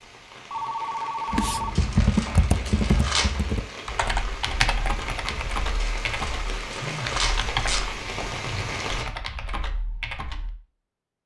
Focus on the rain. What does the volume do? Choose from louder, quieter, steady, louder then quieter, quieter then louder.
louder.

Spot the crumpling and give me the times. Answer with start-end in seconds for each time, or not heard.
1.8-3.4, 5.8-7.8.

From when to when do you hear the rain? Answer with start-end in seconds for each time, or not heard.
0.0-9.1.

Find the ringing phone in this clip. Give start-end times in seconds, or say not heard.
0.5-1.7, 6.8-7.2.